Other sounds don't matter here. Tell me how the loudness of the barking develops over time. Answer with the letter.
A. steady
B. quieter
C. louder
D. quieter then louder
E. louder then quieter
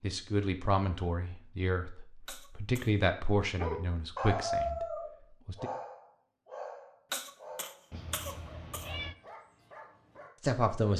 B.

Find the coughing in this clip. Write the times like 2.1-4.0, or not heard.
2.2-2.9, 7.1-8.9.